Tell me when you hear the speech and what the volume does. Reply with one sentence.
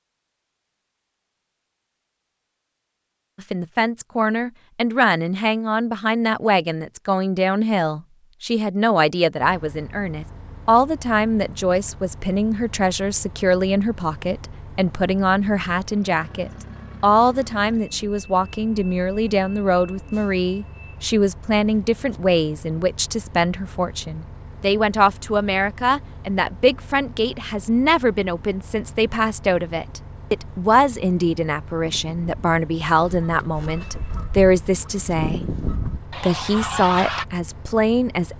You can hear the speech from 3.4 to 38.3 s, at a steady volume.